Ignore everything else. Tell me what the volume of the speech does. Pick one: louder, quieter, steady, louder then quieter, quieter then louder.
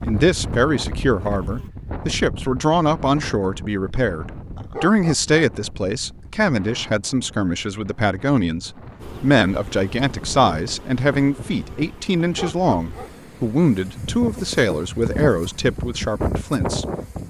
steady.